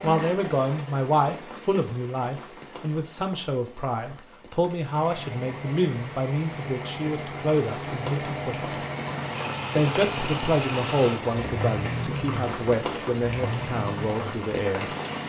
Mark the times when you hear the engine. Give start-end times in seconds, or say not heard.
4.8-15.2.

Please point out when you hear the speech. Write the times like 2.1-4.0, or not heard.
0.0-8.8, 9.7-14.9.